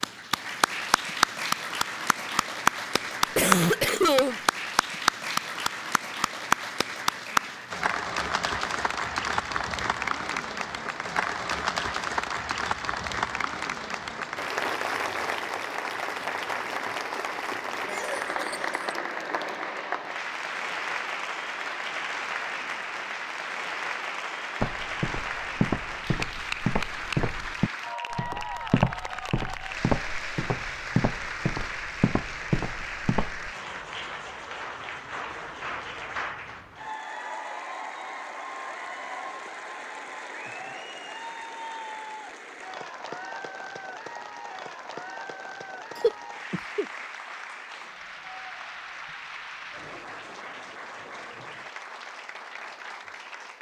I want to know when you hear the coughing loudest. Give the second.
4 s.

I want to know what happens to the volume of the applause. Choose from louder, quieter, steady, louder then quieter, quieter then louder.
quieter.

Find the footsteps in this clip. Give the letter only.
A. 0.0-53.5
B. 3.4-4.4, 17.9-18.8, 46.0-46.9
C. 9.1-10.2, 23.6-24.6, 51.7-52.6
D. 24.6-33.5
D.